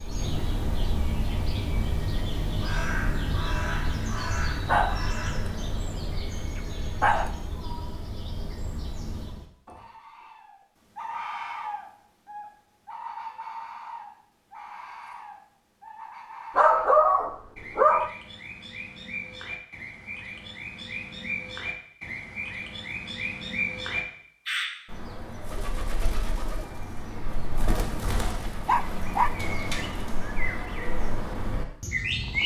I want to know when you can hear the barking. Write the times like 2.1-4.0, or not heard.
4.7-7.3, 16.6-18.1, 28.6-29.3.